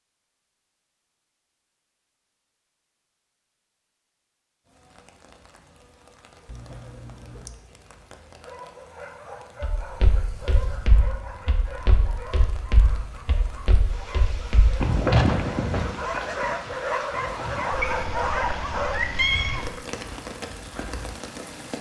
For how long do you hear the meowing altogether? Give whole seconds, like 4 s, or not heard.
3 s.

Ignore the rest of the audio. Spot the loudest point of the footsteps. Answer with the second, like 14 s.
15 s.